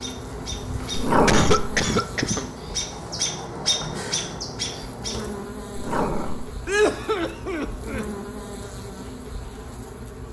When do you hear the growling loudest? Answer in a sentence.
The loudest moment of the growling is at 1 second.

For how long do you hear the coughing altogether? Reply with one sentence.
The coughing can be heard for 3 seconds in total.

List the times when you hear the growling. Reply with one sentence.
You can hear the growling from 0.9 to 1.7 s and from 5.8 to 6.5 s.